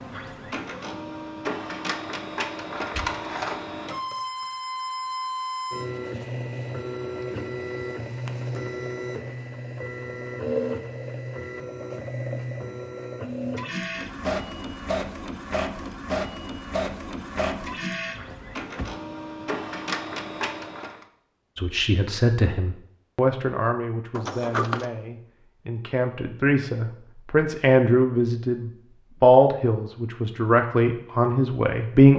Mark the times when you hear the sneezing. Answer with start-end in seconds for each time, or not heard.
not heard.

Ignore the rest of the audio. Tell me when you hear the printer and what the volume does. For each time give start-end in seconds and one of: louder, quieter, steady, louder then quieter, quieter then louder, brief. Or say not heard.
0.0-21.1 steady.